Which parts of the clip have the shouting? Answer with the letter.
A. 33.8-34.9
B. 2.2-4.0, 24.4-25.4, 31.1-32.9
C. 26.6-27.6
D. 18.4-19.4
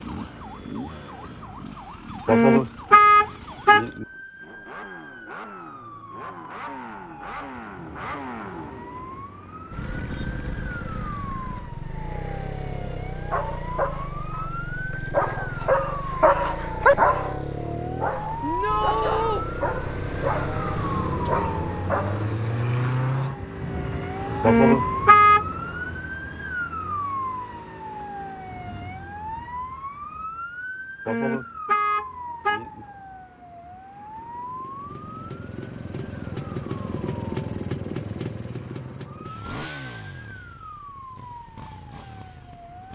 D.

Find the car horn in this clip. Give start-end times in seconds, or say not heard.
2.2-4.0, 24.4-25.4, 31.1-32.9.